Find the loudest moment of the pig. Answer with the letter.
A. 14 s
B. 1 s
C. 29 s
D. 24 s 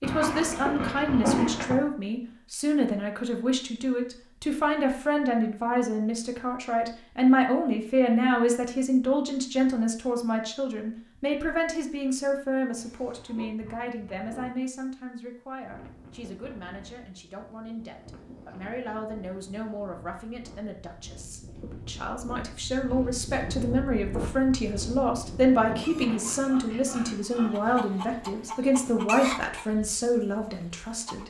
B.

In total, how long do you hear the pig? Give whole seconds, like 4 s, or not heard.
5 s.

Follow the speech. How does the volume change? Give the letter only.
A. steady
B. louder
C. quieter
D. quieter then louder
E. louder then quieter
D.